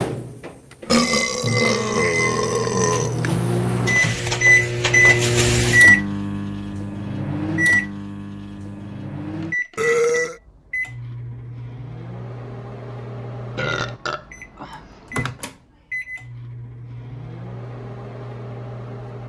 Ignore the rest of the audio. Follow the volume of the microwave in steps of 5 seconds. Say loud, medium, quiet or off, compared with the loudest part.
loud, loud, quiet, quiet.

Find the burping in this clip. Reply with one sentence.
You can hear the burping from 0.8 to 3.4 s, from 9.8 to 10.4 s and from 13.6 to 15.2 s.